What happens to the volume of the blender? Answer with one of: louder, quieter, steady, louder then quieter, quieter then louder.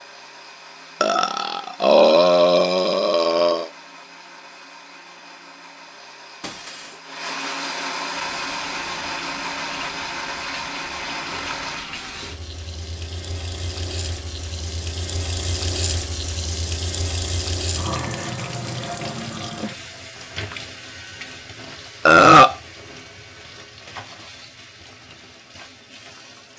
louder.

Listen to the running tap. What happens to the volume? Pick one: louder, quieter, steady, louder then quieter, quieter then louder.
louder then quieter.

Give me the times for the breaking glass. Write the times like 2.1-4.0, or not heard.
6.4-7.0.